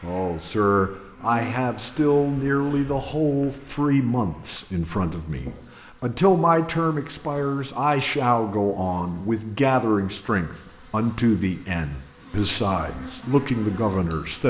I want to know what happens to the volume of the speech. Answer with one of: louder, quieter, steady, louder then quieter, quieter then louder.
steady.